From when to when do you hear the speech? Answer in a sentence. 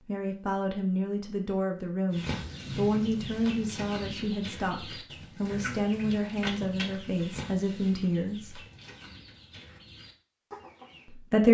You can hear the speech from 0.1 to 8.6 s and from 11.1 to 11.5 s.